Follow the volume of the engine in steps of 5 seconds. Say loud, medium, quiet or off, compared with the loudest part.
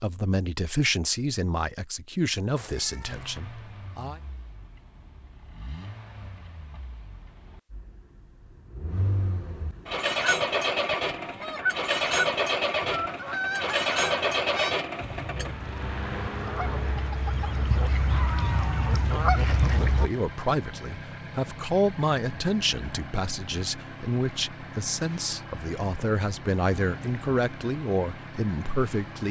quiet, quiet, loud, medium, quiet, quiet.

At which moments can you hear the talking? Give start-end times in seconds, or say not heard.
0.0-4.2, 19.6-29.2.